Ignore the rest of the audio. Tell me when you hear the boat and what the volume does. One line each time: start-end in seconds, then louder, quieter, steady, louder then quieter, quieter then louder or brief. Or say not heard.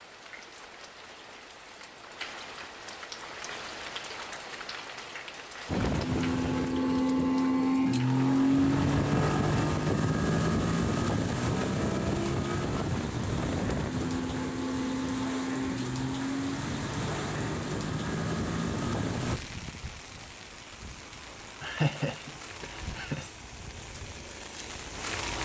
5.7-19.4 quieter.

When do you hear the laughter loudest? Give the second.
22 s.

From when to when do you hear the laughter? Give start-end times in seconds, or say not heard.
21.6-23.3.